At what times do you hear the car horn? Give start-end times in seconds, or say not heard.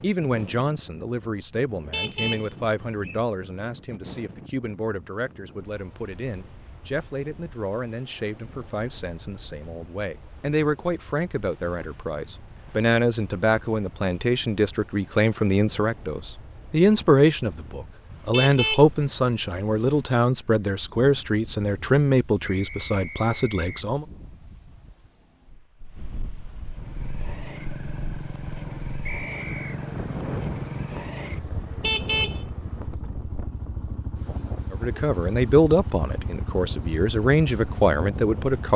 1.7-3.2, 18.1-18.9, 31.6-32.5.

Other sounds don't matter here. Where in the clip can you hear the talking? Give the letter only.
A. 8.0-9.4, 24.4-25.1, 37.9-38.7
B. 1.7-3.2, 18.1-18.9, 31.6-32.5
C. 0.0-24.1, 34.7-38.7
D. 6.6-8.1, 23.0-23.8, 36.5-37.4
C.